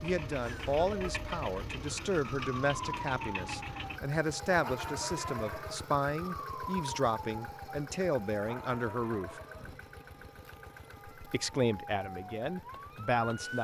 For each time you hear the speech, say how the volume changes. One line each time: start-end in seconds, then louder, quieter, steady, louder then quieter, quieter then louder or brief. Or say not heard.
0.0-9.3 steady
11.2-13.5 brief.